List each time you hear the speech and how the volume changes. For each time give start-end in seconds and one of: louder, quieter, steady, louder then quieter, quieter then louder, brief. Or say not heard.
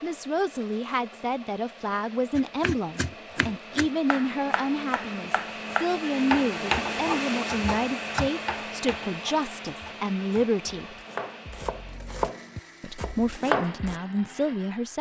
0.0-10.9 steady
12.8-14.9 brief.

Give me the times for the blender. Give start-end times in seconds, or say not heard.
0.0-14.9.